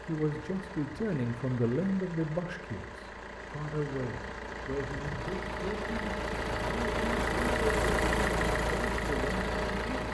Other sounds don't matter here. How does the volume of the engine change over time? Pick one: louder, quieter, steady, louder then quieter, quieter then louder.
louder.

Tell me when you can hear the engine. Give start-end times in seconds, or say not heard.
0.0-10.0.